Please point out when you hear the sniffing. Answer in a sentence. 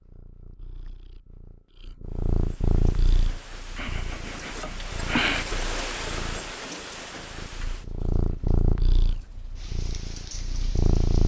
The sniffing can be heard from 3.8 to 5.5 s.